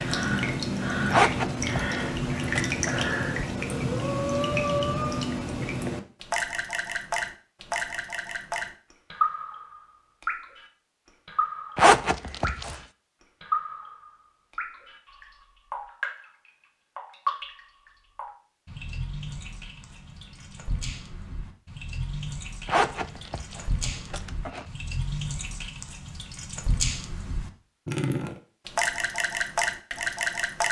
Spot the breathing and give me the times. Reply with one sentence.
You can hear the breathing from 0.0 to 5.3 s.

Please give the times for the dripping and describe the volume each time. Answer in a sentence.
The dripping can be heard from 0.0 to 30.6 s, getting quieter then louder.